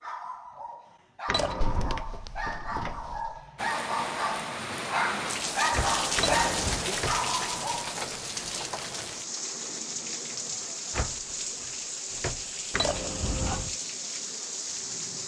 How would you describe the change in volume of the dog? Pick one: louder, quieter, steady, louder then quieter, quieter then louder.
louder.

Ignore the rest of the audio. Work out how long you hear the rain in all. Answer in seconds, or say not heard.
12 s.